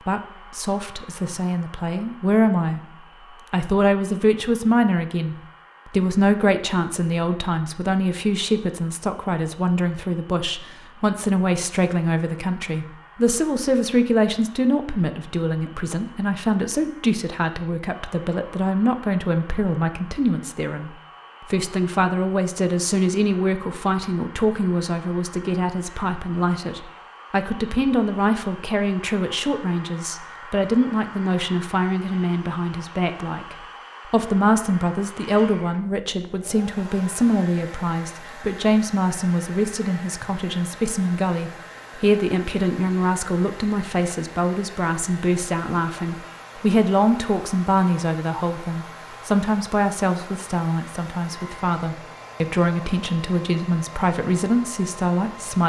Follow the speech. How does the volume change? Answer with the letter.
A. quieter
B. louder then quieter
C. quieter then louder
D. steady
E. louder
D.